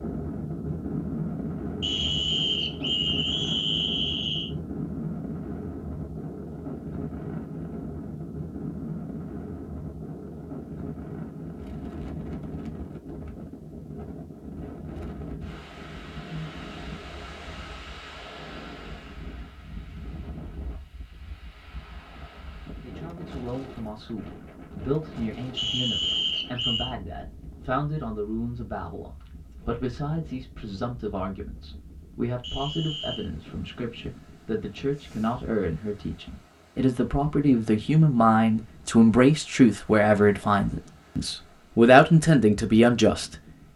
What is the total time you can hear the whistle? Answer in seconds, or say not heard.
5 s.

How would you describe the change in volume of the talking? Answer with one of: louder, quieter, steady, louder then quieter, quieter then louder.
louder.